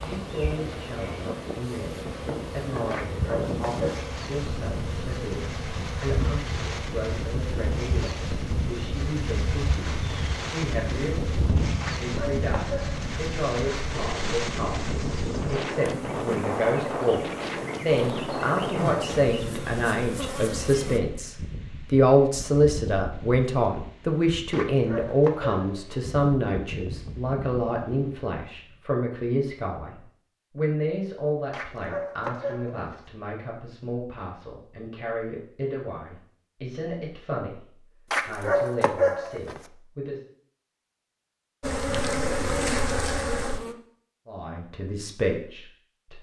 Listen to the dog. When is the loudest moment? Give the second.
39 s.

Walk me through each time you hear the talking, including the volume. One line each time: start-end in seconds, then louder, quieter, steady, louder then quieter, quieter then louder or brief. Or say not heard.
0.0-40.2 louder then quieter
44.2-46.1 brief.